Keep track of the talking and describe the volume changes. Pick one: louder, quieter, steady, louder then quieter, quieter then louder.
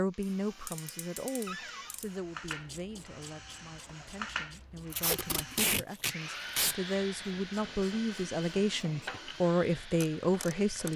quieter then louder.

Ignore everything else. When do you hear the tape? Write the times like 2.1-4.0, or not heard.
4.9-6.8.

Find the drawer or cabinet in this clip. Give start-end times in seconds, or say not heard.
1.4-1.9.